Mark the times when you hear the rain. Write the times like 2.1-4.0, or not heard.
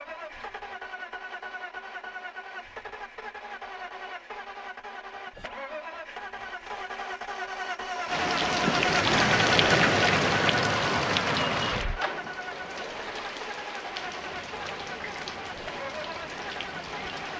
8.1-17.3.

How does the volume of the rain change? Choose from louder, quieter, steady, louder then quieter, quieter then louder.
quieter.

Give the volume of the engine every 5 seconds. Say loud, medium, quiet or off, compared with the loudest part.
medium, loud, medium, medium.